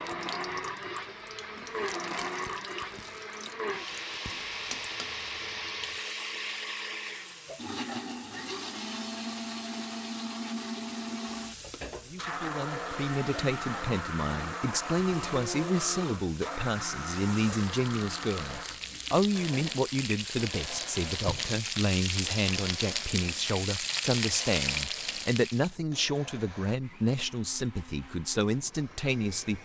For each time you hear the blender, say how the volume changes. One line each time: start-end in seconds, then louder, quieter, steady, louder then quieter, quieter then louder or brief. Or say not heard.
0.0-29.6 quieter.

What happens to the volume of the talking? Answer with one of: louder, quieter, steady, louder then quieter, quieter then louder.
steady.